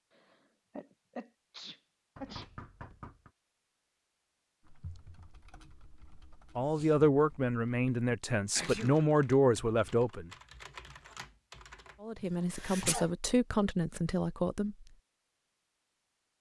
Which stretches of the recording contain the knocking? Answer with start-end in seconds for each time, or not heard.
2.1-3.3.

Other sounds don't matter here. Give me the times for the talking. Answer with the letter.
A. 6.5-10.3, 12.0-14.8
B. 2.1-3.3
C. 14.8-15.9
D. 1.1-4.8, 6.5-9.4
A.